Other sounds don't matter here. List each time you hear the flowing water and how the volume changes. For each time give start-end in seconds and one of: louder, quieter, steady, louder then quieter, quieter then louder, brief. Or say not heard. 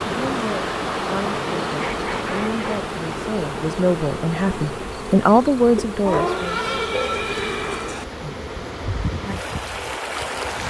0.0-10.6 quieter then louder.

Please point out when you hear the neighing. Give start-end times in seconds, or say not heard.
6.0-8.1.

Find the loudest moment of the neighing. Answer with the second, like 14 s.
7 s.